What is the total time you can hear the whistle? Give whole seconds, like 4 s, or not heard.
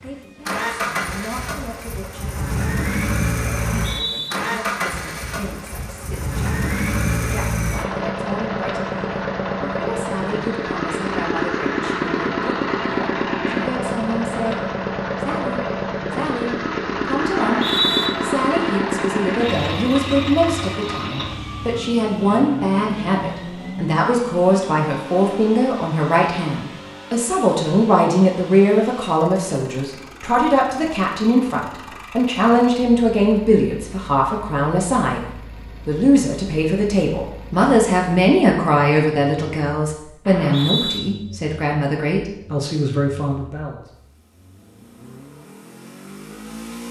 2 s.